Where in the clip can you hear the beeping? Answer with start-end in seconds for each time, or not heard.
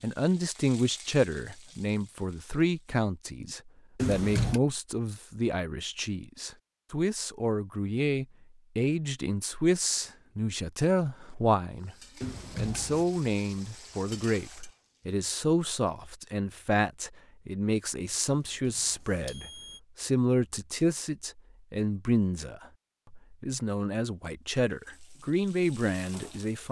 4.0-4.6, 12.2-13.1, 18.3-19.8.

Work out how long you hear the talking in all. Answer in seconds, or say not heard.
26 s.